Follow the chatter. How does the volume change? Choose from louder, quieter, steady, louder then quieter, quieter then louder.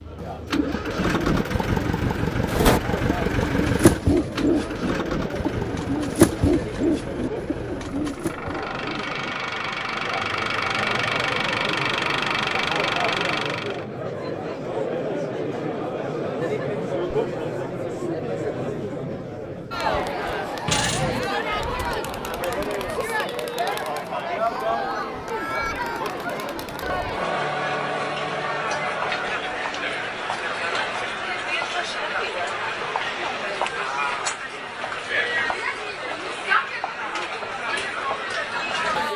louder.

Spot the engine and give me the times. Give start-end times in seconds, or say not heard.
0.0-13.8.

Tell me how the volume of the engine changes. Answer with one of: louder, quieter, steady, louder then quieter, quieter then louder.
quieter then louder.